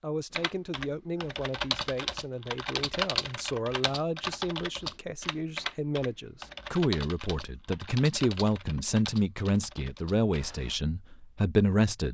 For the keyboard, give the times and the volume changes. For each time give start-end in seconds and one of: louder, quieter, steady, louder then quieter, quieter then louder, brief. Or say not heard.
0.3-10.8 quieter.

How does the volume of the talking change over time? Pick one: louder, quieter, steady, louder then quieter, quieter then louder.
louder.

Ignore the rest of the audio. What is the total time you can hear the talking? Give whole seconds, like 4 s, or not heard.
12 s.